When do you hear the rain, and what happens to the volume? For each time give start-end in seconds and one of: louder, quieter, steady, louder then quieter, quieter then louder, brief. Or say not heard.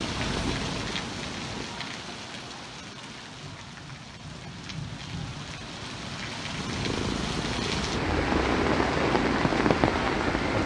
0.0-10.6 quieter then louder.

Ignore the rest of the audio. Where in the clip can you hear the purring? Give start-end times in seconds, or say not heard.
0.0-1.6, 6.5-10.6.